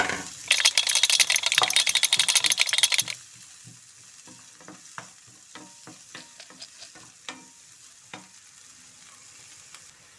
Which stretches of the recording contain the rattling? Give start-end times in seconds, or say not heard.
0.5-3.1, 6.2-7.0.